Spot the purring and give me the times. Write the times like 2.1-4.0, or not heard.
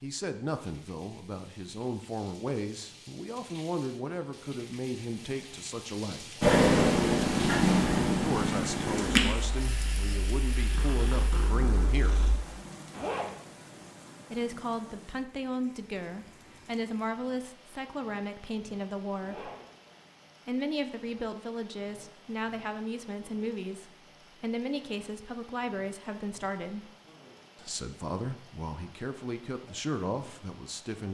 6.4-12.3.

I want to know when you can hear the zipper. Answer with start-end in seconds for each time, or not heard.
12.9-13.3, 19.2-19.6.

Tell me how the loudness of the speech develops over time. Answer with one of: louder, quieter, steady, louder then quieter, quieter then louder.
steady.